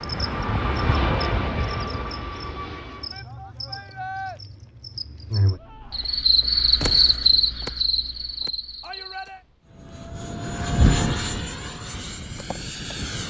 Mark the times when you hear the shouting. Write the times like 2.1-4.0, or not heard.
3.1-4.4, 8.8-9.4.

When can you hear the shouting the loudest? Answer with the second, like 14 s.
4 s.